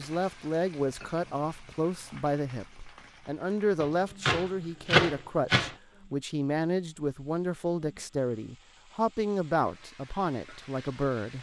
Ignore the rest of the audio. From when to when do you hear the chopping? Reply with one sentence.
You can hear the chopping from 3.8 to 5.8 s.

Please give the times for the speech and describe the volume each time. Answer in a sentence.
You can hear the speech from 0.0 to 11.3 s, at a steady volume.